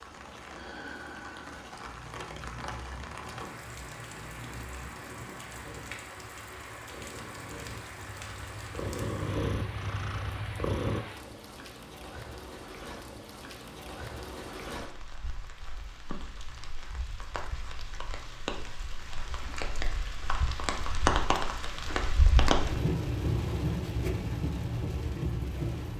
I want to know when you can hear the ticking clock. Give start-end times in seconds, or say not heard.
not heard.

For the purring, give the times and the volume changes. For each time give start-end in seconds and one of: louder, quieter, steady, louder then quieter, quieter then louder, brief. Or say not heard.
0.0-11.1 louder.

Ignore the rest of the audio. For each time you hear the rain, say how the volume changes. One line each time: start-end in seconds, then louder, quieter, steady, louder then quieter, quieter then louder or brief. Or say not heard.
0.0-25.9 louder.